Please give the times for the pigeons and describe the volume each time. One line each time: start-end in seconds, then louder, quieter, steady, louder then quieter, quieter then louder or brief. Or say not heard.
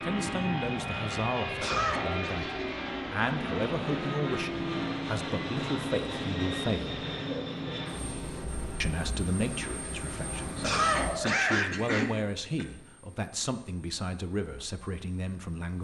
not heard.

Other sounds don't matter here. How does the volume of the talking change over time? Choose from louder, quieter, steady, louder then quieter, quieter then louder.
steady.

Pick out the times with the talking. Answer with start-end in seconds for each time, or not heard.
0.0-7.0, 8.8-15.7.